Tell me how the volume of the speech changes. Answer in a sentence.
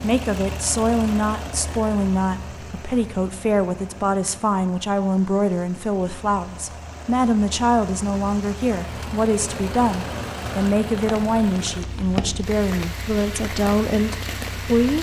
The volume of the speech stays about the same.